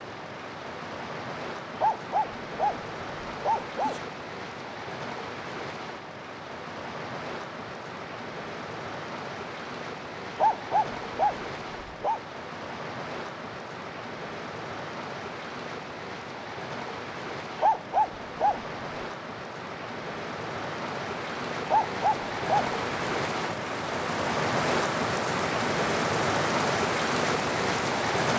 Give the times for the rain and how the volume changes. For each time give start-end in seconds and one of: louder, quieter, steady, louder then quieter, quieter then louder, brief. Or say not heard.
0.0-28.3 louder.